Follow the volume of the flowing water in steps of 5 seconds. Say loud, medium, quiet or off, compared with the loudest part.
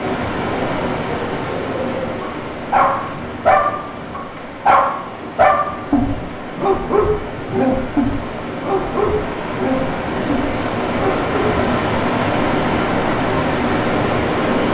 medium, medium, loud.